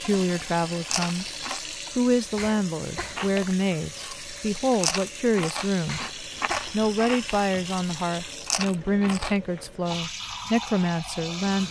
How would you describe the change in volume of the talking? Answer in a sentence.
The loudness of the talking stays about the same.